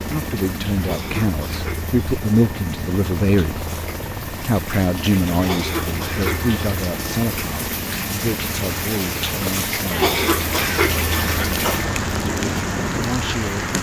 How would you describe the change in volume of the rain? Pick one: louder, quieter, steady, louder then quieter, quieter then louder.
louder.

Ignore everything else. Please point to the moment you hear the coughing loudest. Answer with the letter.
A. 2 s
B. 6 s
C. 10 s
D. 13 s
C.